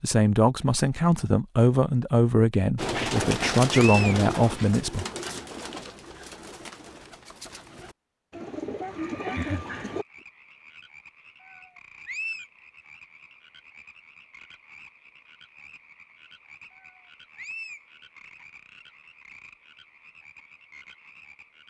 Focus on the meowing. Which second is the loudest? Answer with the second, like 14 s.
4 s.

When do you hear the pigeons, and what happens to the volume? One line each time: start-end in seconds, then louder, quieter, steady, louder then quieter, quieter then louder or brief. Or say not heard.
2.8-10.1 quieter then louder.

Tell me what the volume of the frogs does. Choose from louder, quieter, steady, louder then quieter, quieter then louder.
steady.